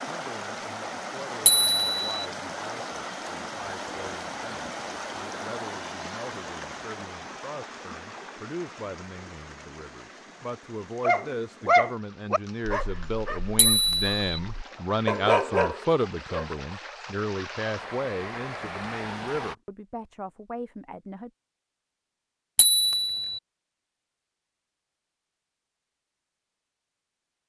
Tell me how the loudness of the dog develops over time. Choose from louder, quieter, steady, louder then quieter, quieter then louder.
quieter then louder.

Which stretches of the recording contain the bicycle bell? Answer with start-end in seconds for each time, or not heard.
1.4-2.2, 13.6-14.4, 22.6-23.4.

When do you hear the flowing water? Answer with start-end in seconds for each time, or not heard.
0.0-19.6.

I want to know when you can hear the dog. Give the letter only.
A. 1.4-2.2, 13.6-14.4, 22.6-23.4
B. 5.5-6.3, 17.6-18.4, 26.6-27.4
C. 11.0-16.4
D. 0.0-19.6
C.